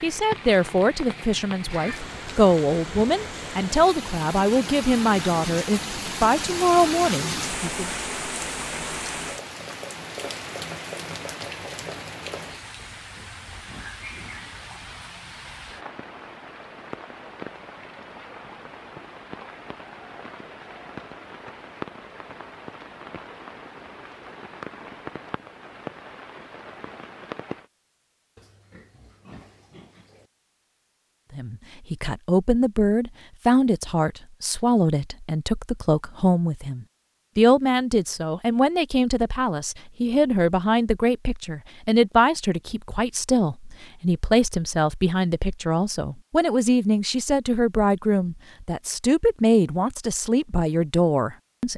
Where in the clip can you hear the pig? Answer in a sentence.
You can hear the pig from 12.9 to 14.7 s and from 28.4 to 30.3 s.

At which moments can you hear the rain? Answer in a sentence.
The rain can be heard from 0.0 to 27.7 s.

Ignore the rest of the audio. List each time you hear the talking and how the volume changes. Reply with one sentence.
The talking can be heard from 0.0 to 7.9 s, at a steady volume; and from 31.4 to 51.7 s, at a steady volume.